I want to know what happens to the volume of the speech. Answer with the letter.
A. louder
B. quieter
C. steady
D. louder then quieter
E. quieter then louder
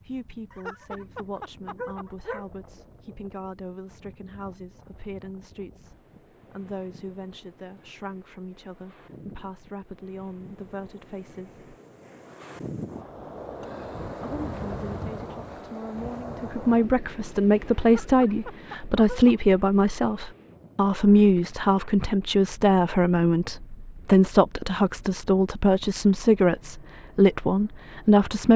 A.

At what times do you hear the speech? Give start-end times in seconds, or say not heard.
0.1-11.6, 14.2-28.5.